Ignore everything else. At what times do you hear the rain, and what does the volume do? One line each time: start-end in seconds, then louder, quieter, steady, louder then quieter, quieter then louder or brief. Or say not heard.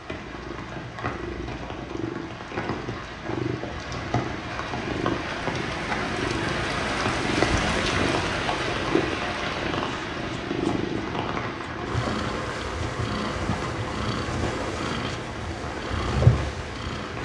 0.0-17.2 louder then quieter.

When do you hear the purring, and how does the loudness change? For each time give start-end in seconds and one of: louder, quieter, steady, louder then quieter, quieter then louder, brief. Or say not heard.
0.1-17.2 louder.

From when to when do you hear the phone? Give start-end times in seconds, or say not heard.
not heard.